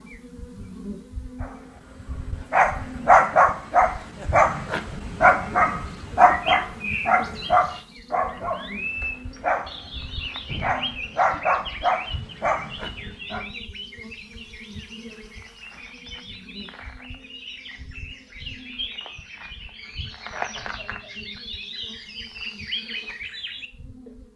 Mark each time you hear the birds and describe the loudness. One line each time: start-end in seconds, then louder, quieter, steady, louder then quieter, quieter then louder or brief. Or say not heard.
5.8-24.1 quieter then louder.